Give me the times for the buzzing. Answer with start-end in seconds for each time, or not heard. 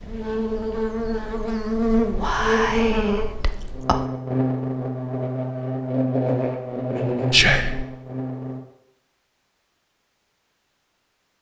0.0-8.6.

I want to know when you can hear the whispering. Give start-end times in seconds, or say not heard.
2.0-4.0, 7.3-7.8.